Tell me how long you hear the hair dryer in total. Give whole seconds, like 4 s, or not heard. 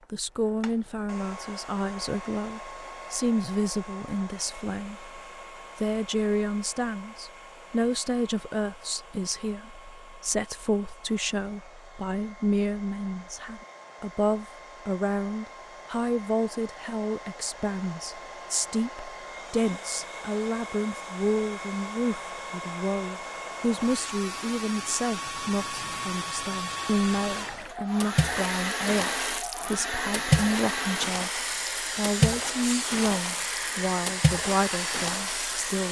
36 s.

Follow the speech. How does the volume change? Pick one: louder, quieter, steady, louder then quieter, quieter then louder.
steady.